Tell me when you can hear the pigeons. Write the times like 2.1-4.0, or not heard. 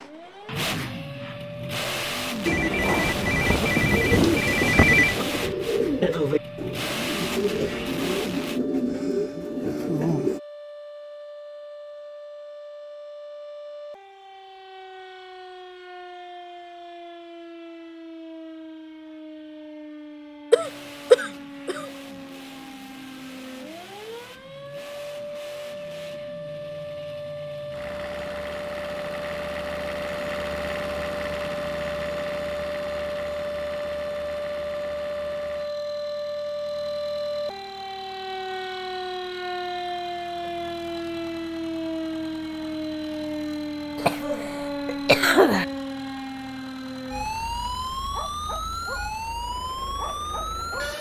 3.9-10.4.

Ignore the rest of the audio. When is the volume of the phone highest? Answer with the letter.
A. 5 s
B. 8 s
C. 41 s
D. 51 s
A.